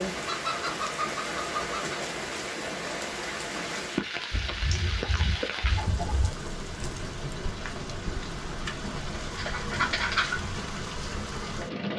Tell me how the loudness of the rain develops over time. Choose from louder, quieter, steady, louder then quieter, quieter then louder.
steady.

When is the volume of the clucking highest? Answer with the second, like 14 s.
10 s.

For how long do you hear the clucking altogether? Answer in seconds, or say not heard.
5 s.